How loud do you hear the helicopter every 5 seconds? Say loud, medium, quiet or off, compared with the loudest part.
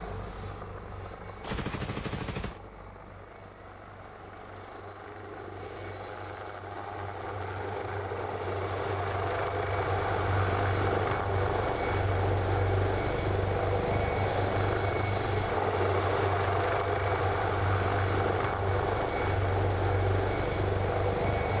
quiet, medium, loud, loud, loud.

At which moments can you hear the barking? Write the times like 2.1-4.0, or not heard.
not heard.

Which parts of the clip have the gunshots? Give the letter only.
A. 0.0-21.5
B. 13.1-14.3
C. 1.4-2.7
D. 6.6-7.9
C.